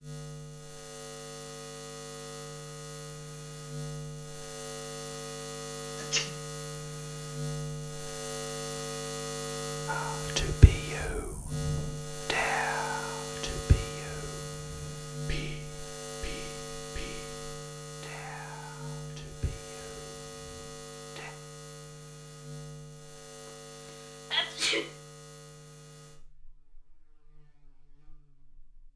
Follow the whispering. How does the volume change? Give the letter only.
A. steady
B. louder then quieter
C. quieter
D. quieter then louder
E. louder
C.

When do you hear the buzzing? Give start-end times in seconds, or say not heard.
0.0-28.9.